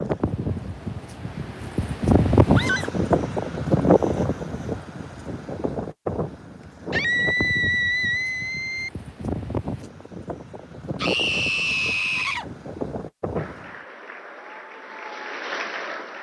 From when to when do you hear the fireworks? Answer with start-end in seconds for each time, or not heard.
not heard.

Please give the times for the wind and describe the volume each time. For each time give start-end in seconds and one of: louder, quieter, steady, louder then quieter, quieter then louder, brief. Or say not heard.
0.0-13.8 quieter.